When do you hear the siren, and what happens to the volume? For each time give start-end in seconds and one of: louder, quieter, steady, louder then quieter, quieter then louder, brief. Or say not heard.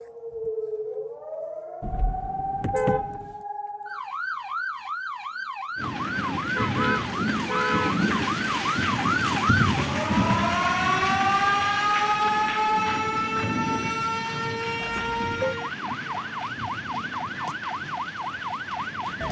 0.0-19.2 louder then quieter.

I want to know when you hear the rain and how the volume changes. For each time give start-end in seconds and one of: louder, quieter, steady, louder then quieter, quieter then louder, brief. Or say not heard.
5.8-19.2 quieter.